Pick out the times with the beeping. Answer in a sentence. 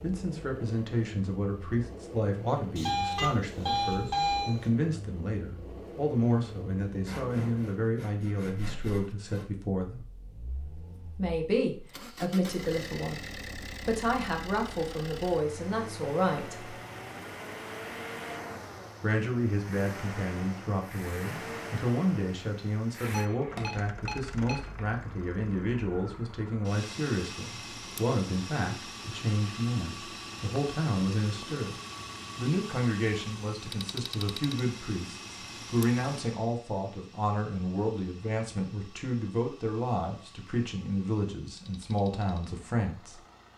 You can hear the beeping from 2.8 to 4.7 s and from 23.0 to 24.8 s.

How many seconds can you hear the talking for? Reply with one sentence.
The talking can be heard for 39 seconds in total.